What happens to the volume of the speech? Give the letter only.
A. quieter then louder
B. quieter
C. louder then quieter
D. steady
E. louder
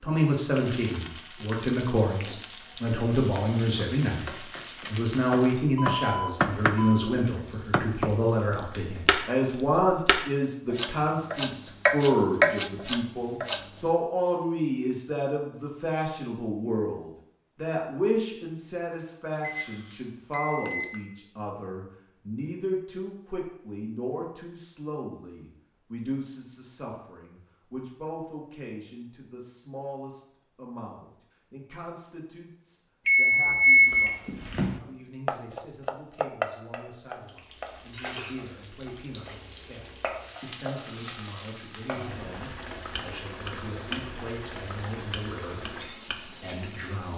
B.